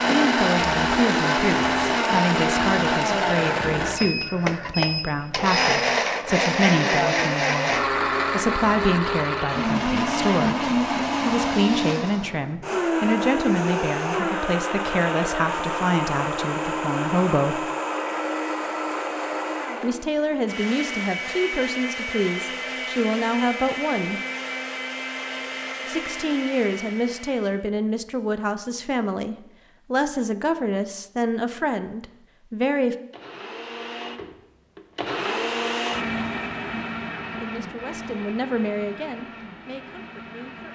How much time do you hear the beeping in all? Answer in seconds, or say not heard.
2 s.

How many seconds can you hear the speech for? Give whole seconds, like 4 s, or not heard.
32 s.